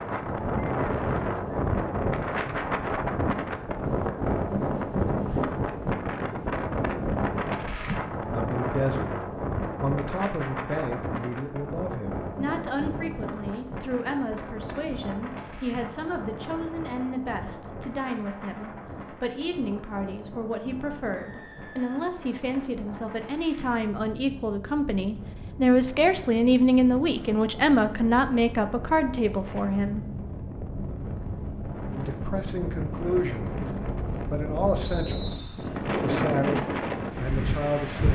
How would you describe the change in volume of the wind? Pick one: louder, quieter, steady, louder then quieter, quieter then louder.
quieter then louder.